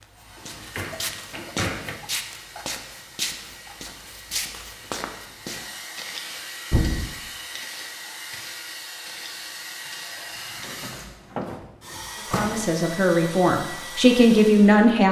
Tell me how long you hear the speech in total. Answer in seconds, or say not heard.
3 s.